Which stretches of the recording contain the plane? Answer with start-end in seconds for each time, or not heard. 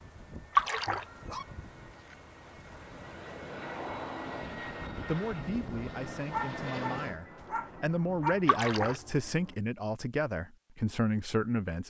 0.0-9.6.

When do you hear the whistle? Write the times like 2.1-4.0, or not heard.
not heard.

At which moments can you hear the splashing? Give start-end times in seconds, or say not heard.
0.6-1.1, 8.4-9.0.